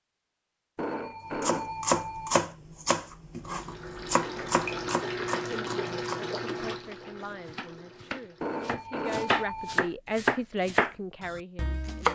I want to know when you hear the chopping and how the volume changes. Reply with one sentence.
You can hear the chopping from 1.4 to 12.1 s, getting quieter then louder.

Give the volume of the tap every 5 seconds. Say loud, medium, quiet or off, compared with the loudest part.
loud, loud, off.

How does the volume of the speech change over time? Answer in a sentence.
The loudness of the speech goes up.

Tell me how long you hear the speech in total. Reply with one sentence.
You can hear the speech for 7 seconds altogether.